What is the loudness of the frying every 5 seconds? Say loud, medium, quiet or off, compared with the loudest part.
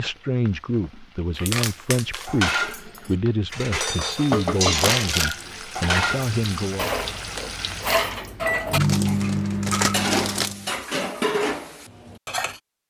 loud, loud, off.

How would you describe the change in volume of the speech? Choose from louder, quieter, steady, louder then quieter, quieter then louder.
steady.